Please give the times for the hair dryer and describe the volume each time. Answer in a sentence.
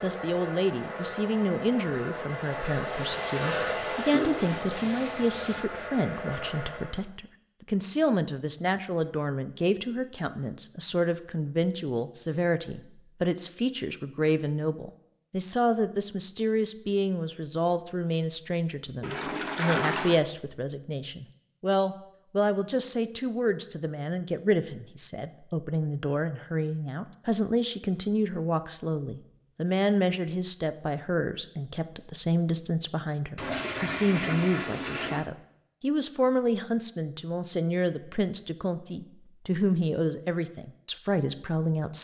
You can hear the hair dryer from 0.0 to 7.1 s, getting louder then quieter.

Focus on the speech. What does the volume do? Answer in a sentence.
The loudness of the speech stays about the same.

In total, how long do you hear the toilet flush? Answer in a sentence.
You can hear the toilet flush for 5 seconds altogether.